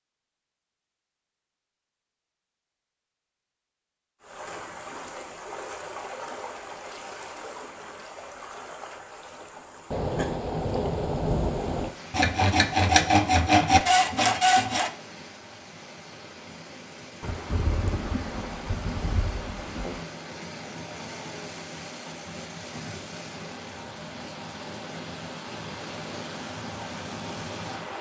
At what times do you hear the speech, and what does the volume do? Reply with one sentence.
The speech can't be heard in this clip.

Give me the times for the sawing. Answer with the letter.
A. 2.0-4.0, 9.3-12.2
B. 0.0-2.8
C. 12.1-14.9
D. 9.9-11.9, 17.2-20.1
C.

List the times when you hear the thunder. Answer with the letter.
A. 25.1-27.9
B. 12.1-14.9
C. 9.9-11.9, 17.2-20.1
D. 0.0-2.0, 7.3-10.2
C.